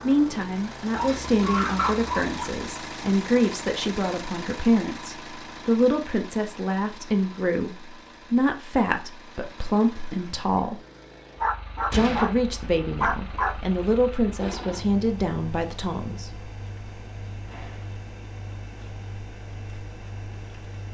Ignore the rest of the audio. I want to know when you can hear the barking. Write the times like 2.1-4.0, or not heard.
0.9-2.5, 11.4-12.4, 13.0-13.8.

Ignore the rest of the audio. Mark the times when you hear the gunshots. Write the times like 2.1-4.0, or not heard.
11.9-12.4.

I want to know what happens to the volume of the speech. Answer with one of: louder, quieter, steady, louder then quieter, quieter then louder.
steady.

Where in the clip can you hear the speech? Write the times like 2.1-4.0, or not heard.
0.0-10.8, 11.9-16.3.